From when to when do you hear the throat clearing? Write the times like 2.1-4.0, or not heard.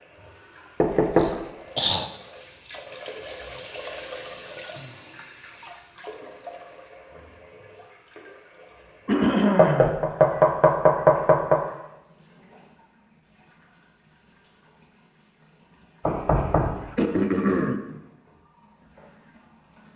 1.1-2.1, 9.1-9.9, 16.9-17.8.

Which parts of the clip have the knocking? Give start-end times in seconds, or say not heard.
0.8-1.4, 9.6-11.6, 16.1-16.9.